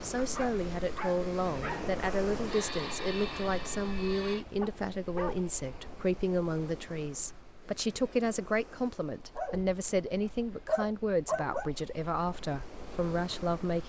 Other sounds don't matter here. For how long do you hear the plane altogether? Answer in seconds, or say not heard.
2 s.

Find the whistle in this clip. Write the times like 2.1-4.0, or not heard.
not heard.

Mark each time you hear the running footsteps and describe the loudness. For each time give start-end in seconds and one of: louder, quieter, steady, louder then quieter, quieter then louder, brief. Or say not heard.
not heard.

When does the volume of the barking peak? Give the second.
11 s.